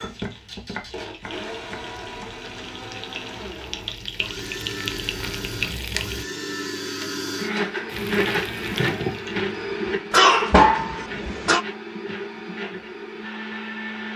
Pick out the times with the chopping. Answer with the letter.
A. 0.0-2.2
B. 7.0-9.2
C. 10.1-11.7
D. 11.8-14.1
A.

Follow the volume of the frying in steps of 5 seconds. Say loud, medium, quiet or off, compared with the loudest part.
medium, loud, off.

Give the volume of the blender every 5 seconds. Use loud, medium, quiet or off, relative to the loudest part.
medium, loud, medium.